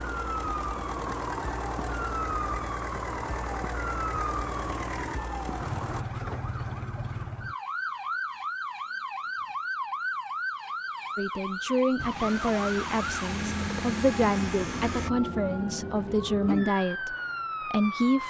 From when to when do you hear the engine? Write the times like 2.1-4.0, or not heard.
0.0-6.0, 11.9-15.1.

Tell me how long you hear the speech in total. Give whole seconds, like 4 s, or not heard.
7 s.